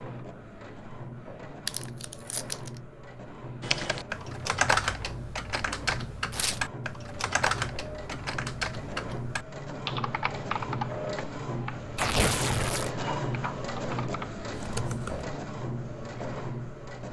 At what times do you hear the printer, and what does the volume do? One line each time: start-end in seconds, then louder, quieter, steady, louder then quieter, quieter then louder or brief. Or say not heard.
0.0-17.0 louder.